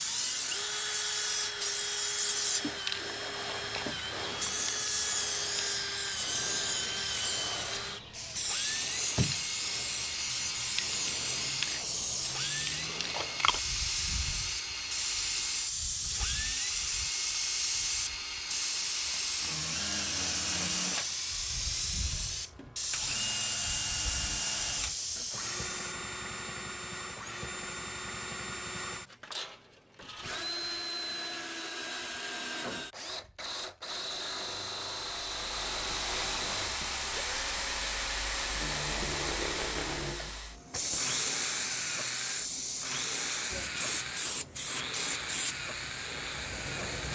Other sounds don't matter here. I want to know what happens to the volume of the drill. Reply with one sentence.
The volume of the drill stays about the same.